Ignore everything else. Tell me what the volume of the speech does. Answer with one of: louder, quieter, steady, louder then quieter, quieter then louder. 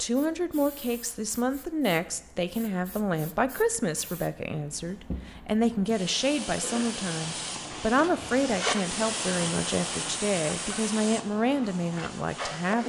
steady.